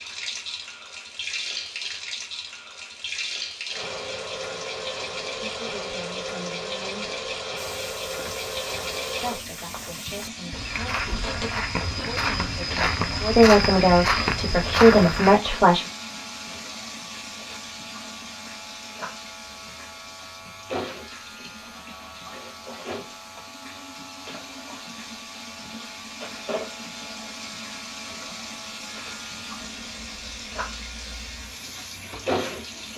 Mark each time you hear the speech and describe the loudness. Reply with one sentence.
You can hear the speech briefly from 5.3 to 7.3 s; and from 9.2 to 15.8 s, getting louder.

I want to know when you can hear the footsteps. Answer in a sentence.
You can hear the footsteps from 7.5 to 15.4 s.